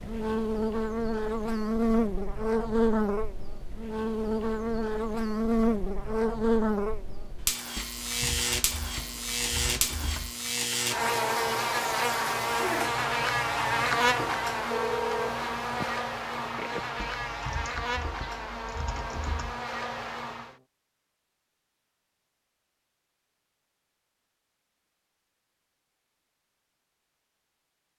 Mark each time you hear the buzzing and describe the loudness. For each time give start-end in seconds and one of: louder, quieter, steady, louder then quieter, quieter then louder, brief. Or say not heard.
0.0-20.6 quieter.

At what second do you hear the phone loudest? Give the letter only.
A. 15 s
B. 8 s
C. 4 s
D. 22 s
A.